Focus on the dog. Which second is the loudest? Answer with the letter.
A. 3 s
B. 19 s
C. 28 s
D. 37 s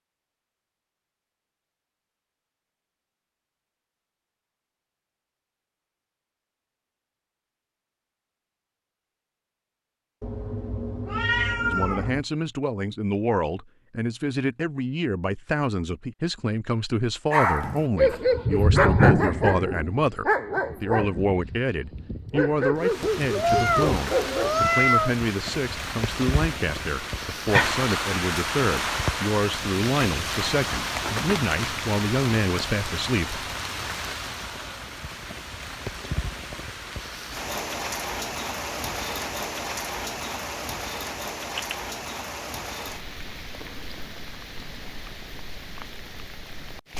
B.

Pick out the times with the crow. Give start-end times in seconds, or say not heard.
not heard.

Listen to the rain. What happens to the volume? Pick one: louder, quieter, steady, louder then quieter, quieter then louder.
quieter.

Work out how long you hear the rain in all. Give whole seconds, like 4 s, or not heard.
24 s.